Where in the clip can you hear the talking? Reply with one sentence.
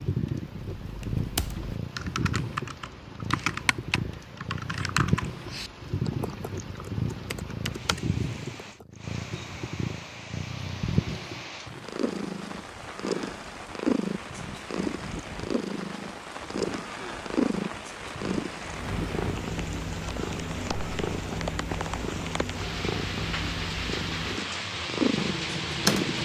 The talking can't be heard in this clip.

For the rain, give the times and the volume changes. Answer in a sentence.
You can hear the rain from 0.0 to 26.2 s, getting louder.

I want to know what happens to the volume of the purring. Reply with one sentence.
The volume of the purring stays about the same.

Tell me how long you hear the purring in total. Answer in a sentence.
You can hear the purring for 26 seconds altogether.